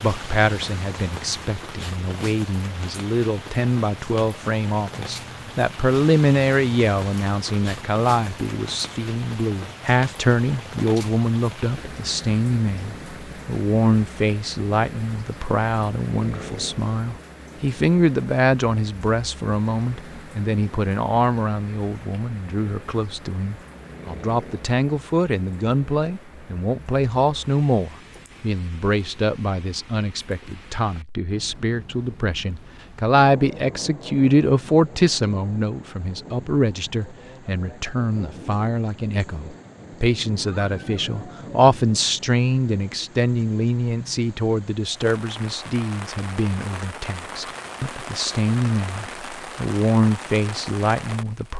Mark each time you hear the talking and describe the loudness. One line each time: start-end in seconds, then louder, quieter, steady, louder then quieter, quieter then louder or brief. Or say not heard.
0.0-51.5 steady.